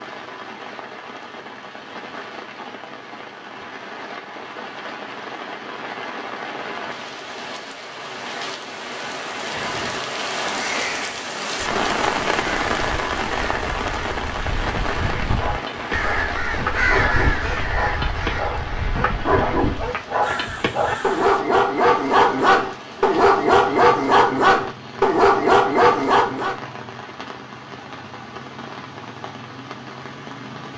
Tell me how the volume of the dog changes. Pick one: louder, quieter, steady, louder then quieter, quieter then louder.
louder.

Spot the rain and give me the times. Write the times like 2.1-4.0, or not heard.
0.0-30.7.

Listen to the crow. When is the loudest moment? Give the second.
17 s.